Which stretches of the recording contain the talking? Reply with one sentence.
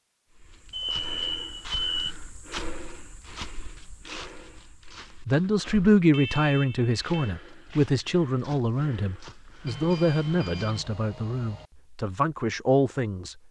You can hear the talking from 5.2 to 13.3 s.